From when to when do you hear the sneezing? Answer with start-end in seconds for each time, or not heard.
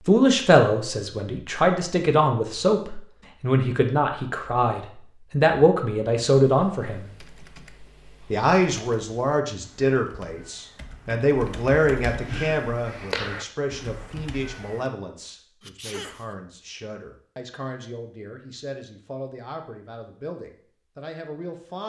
15.6-16.4.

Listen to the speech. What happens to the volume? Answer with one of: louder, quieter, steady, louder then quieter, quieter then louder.
quieter.